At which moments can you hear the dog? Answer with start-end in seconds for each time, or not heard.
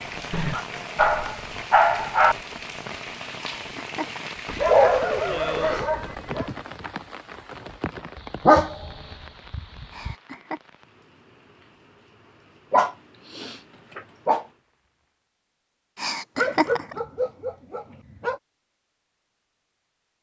0.3-2.4, 4.5-6.5, 8.4-10.2, 12.7-14.4, 16.4-18.4.